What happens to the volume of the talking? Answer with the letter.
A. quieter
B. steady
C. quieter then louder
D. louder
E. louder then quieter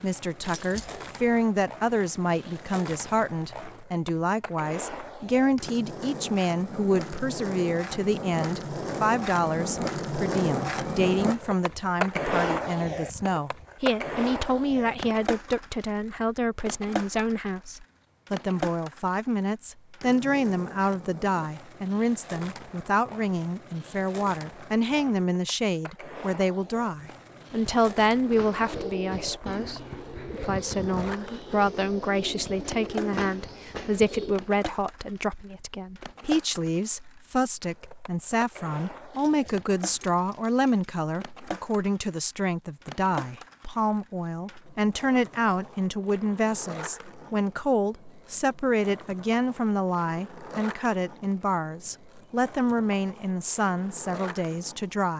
B.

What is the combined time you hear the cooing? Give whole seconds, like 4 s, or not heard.
6 s.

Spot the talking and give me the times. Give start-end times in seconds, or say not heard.
0.0-55.1.